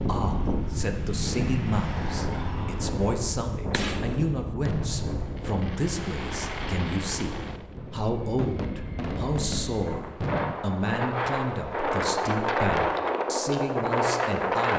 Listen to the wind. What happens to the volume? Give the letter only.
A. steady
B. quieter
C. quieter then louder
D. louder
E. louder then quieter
C.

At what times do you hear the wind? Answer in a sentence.
The wind can be heard from 0.0 to 14.7 s.